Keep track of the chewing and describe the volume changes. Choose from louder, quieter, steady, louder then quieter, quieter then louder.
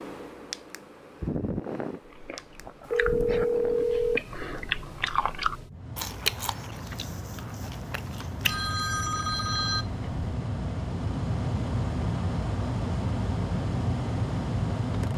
louder then quieter.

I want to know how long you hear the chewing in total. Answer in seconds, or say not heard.
7 s.